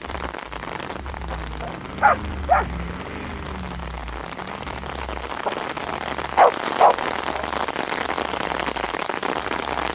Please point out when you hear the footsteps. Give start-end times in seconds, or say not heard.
not heard.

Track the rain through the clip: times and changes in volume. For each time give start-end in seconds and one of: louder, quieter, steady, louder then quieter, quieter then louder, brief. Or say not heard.
0.0-9.9 louder.